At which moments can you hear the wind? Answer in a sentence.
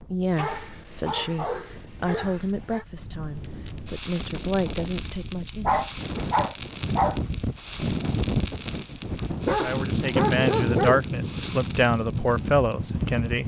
You can hear the wind from 0.0 to 13.4 s.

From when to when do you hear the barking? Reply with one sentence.
You can hear the barking from 0.3 to 2.9 s, from 5.7 to 7.2 s and from 9.4 to 11.0 s.